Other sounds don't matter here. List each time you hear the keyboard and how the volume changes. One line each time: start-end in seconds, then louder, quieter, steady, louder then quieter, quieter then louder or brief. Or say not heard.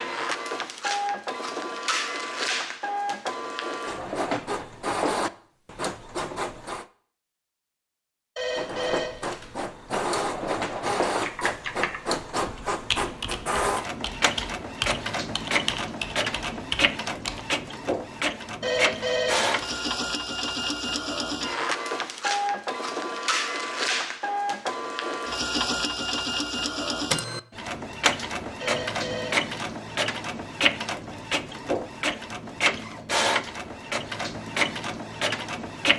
11.1-17.6 steady.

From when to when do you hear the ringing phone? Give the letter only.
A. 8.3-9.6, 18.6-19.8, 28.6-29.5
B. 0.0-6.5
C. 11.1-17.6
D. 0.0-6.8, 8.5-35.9
A.